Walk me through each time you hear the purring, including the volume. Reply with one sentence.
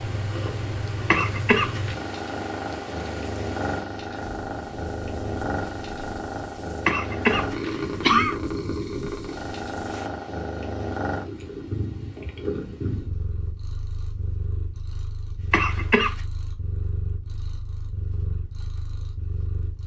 You can hear the purring from 0.0 to 19.8 s, getting quieter.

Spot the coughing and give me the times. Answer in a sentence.
You can hear the coughing from 1.1 to 1.9 s, from 6.8 to 8.3 s and from 15.5 to 16.1 s.